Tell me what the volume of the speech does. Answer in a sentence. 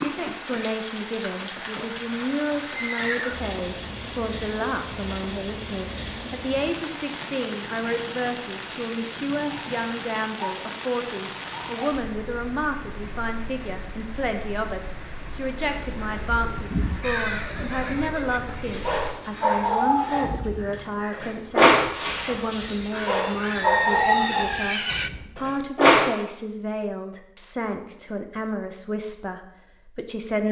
The volume of the speech stays about the same.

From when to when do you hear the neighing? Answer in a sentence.
The neighing can be heard from 1.9 to 3.4 s, from 17.2 to 18.8 s and from 23.1 to 25.1 s.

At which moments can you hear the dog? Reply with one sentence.
You can hear the dog from 18.6 to 26.1 s.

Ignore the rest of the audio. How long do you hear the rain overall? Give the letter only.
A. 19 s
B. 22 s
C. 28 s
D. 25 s
A.